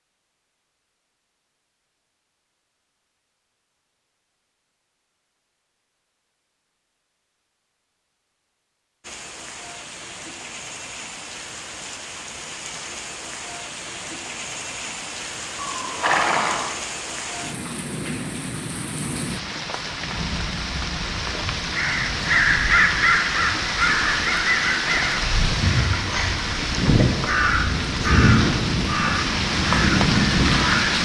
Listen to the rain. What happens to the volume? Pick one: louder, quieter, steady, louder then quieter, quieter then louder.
louder.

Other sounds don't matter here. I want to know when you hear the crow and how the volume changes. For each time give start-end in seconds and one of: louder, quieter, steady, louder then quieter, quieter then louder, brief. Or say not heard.
21.8-30.9 quieter.